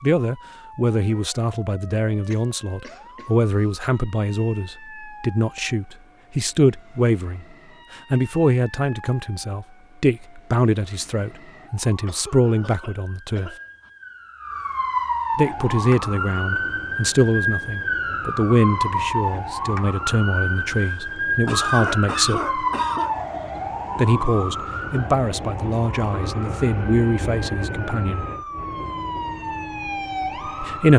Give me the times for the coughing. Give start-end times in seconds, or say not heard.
2.3-3.9, 12.1-13.9, 20.7-23.1.